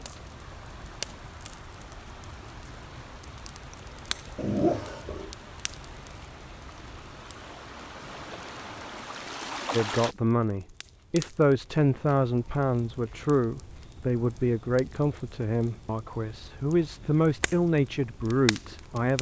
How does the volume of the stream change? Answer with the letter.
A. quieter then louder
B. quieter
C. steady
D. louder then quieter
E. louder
E.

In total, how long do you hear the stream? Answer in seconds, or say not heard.
10 s.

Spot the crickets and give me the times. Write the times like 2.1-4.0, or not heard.
not heard.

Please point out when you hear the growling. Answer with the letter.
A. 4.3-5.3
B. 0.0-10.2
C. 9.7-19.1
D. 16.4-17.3
A.